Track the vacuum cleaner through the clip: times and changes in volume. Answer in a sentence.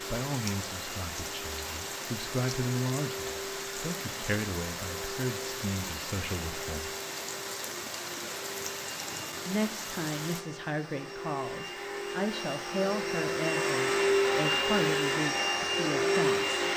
You can hear the vacuum cleaner from 0.0 to 16.7 s, getting louder.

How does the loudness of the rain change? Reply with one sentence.
The loudness of the rain stays about the same.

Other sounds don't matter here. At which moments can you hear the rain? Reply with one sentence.
The rain can be heard from 0.0 to 10.4 s.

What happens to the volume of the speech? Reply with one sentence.
The loudness of the speech stays about the same.